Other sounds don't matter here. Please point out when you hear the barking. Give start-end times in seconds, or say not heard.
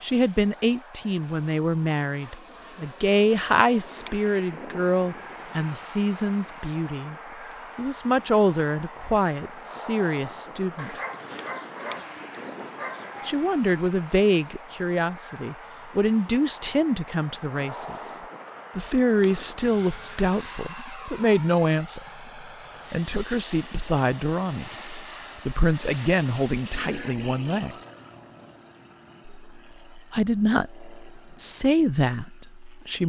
10.8-13.4.